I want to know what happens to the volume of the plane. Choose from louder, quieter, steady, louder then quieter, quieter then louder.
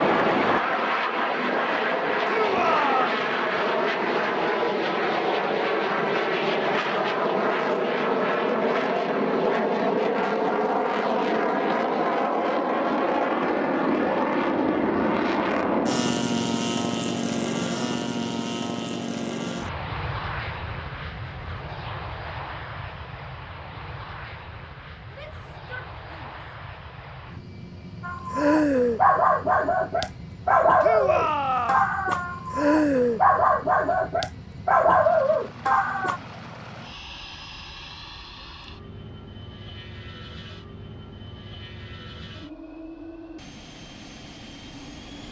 quieter.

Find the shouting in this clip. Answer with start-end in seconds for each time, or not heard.
2.2-3.1, 25.1-26.4, 30.8-31.9.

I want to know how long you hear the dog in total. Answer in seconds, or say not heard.
8 s.